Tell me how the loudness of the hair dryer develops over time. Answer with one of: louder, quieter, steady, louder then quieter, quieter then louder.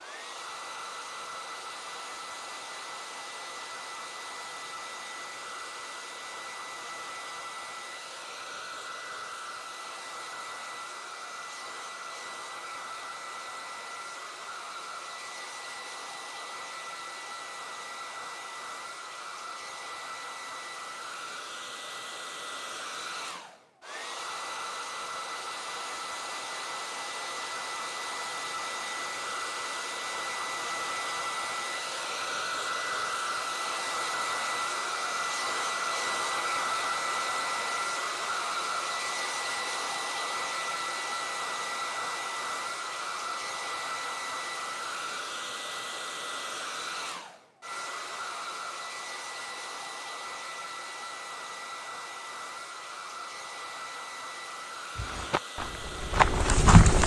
louder then quieter.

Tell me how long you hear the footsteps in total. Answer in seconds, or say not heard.
2 s.